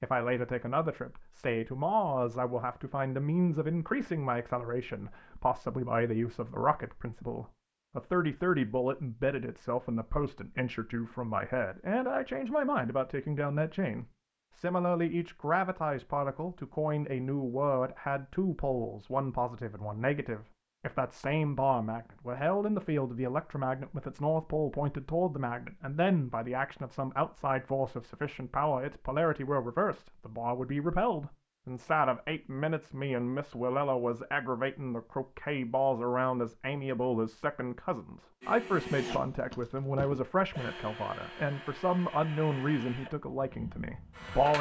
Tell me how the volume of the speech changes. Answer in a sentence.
The volume of the speech stays about the same.